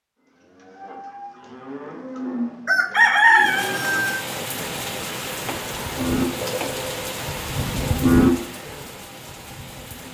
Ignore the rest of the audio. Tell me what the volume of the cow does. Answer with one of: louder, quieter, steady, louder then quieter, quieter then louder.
louder.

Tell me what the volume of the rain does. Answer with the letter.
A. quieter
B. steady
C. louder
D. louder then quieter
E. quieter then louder
A.